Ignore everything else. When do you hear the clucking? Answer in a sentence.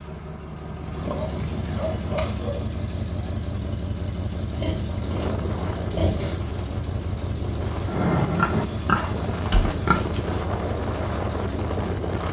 You can't hear the clucking here.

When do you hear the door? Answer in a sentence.
The door can't be heard in this clip.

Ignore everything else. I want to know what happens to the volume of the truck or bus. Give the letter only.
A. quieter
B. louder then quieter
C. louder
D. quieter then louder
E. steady
E.